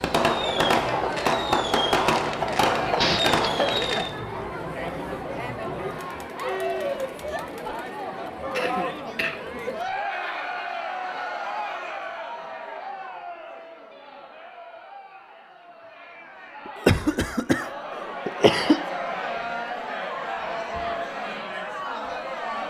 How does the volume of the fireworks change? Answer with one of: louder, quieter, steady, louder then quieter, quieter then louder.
steady.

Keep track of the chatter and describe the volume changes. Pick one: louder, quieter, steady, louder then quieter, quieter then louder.
quieter then louder.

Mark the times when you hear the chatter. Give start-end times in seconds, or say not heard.
0.2-22.6.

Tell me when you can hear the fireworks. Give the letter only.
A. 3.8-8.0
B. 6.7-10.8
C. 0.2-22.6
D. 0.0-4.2
D.